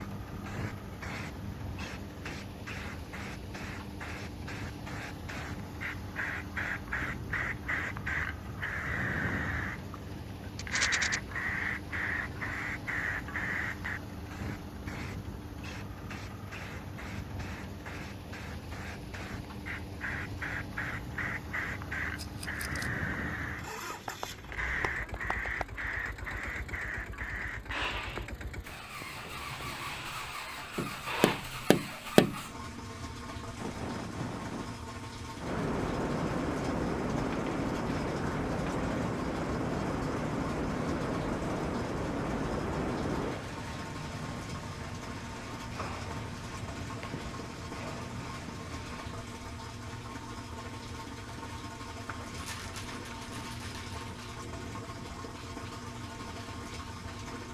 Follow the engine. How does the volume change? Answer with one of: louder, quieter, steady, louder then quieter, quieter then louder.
steady.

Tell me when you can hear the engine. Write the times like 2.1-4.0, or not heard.
0.0-57.4.